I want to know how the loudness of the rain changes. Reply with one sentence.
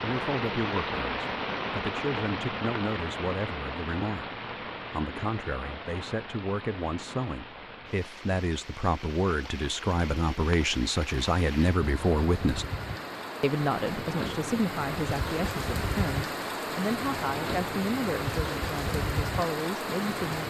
The volume of the rain goes down, then up.